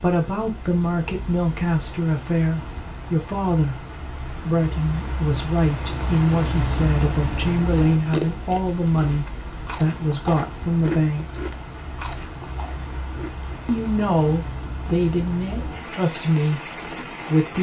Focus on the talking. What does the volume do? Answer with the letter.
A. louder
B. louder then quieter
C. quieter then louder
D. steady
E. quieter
D.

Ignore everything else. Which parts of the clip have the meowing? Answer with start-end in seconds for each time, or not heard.
not heard.